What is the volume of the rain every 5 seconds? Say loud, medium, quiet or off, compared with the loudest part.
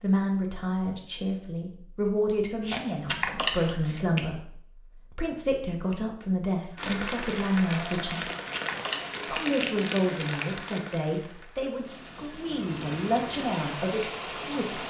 off, loud, loud.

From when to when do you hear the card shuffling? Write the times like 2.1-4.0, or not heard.
2.6-4.2, 8.1-9.8.